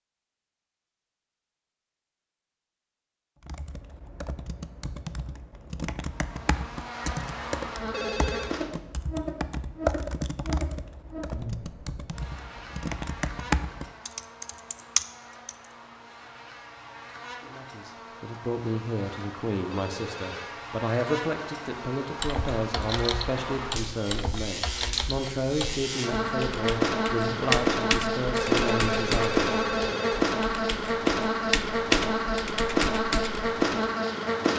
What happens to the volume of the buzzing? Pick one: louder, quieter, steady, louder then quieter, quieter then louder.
quieter then louder.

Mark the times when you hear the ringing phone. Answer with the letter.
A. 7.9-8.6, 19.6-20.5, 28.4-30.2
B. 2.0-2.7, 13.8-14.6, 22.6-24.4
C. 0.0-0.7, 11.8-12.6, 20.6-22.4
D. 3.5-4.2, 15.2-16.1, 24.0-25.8
A.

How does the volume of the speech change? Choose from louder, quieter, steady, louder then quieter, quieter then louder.
steady.